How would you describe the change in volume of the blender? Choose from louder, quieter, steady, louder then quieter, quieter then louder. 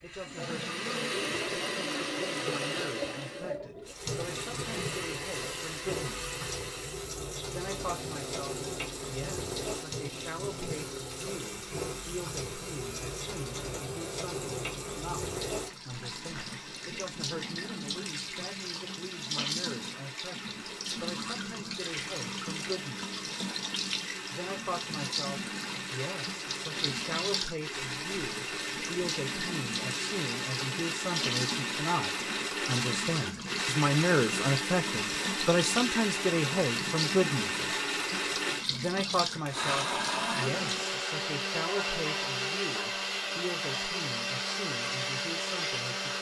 quieter then louder.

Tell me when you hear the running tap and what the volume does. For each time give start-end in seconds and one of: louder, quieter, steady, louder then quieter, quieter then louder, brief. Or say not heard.
0.0-40.9 steady.